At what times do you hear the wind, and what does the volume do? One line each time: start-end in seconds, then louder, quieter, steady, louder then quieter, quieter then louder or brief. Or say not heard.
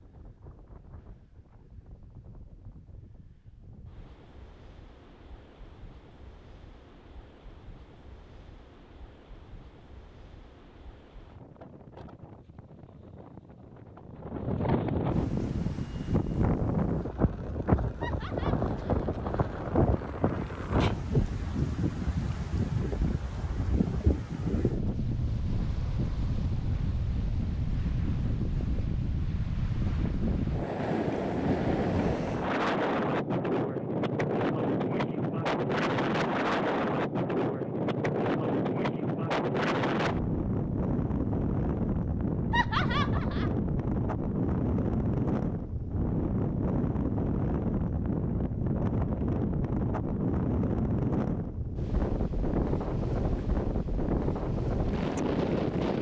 0.0-55.9 louder.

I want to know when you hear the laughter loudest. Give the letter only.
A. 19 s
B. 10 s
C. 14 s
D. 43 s
D.